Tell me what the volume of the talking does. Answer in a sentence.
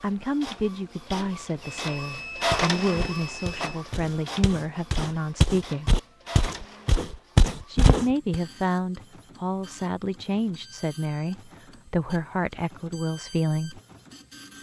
The loudness of the talking stays about the same.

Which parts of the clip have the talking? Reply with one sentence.
You can hear the talking from 0.0 to 6.0 s and from 7.7 to 13.8 s.